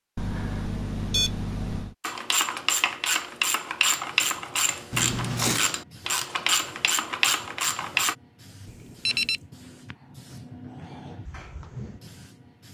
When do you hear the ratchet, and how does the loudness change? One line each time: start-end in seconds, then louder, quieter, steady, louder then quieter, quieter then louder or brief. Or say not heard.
2.0-8.2 steady.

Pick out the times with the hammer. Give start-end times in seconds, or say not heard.
not heard.